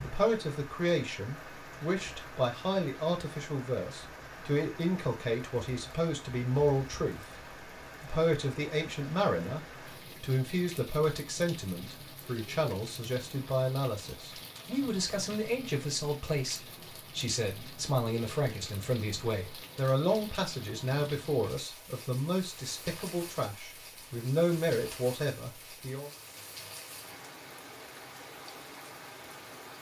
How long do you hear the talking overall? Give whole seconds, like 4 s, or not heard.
25 s.